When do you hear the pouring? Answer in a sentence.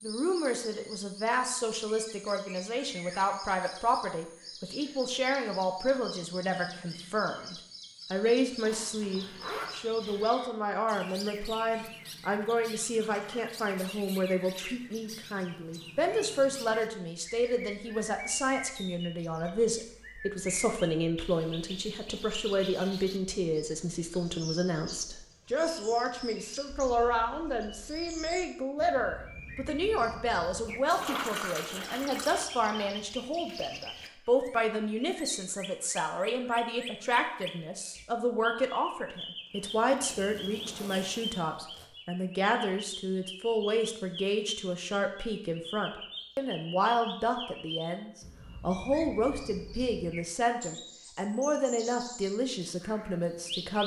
You can hear the pouring from 13.1 to 13.5 s and from 30.9 to 32.5 s.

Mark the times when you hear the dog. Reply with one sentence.
The dog can't be heard in this clip.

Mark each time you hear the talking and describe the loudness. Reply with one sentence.
The talking can be heard from 0.0 to 53.8 s, at a steady volume.